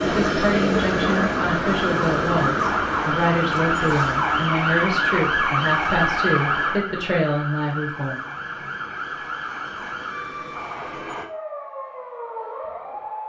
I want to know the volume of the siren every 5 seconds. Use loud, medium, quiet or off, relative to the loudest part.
loud, loud, medium.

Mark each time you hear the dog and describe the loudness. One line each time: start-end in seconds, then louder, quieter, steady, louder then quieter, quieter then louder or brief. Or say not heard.
not heard.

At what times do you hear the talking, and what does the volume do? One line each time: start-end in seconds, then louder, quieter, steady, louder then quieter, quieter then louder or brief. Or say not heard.
0.0-8.2 steady.